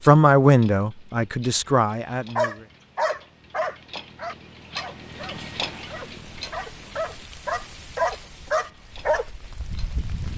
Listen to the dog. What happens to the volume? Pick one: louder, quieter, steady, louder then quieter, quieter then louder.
quieter then louder.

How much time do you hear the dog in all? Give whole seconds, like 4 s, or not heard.
7 s.